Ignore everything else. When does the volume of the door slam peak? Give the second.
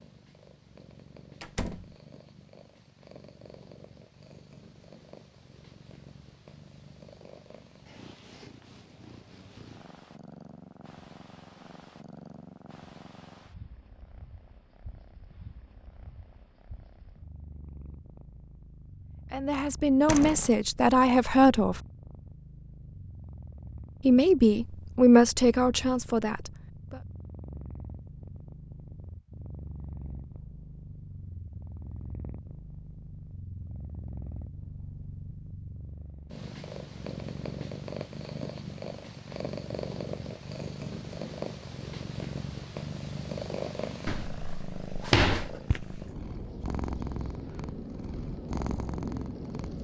45 s.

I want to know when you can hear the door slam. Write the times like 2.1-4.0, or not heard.
1.4-1.9, 20.1-20.6, 44.0-45.6.